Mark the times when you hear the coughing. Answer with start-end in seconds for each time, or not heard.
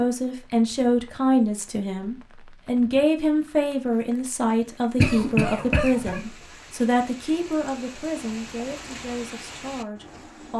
5.0-6.2.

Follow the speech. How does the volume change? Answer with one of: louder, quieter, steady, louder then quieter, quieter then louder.
quieter.